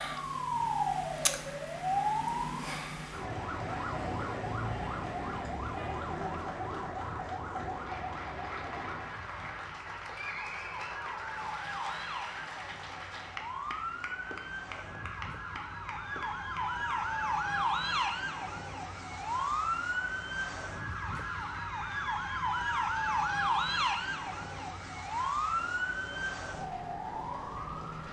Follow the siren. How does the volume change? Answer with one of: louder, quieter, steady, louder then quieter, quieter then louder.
quieter then louder.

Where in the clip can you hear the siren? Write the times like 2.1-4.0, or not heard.
0.0-28.0.